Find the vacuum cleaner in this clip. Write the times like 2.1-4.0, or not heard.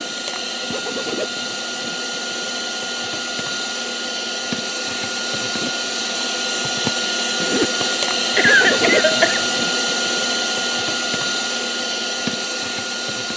0.0-13.3.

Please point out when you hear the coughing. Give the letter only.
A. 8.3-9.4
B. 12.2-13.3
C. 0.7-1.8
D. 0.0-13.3
A.